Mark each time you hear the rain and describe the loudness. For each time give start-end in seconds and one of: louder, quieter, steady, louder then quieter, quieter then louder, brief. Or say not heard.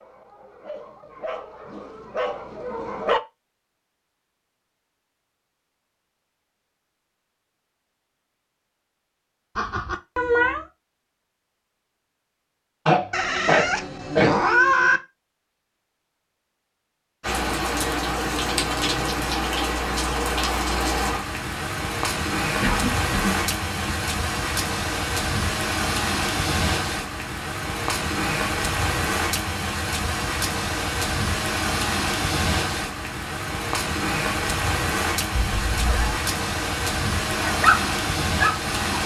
17.2-39.0 steady.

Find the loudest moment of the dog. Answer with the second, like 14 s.
38 s.